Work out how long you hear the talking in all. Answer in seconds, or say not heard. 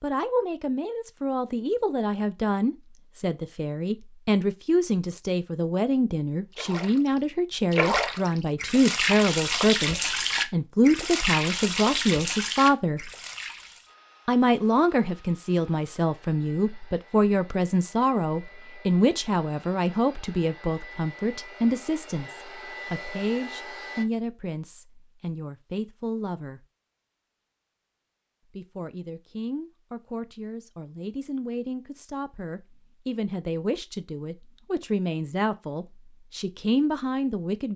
35 s.